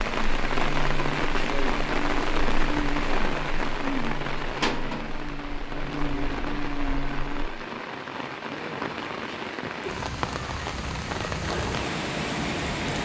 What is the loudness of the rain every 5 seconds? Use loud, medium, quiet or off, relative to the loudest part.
loud, medium, loud.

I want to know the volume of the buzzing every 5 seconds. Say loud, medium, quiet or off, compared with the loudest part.
loud, loud, off.